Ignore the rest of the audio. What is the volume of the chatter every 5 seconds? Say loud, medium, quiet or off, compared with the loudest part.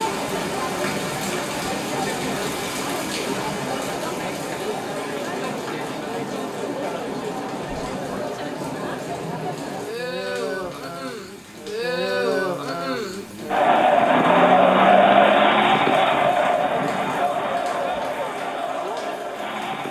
medium, medium, loud, loud.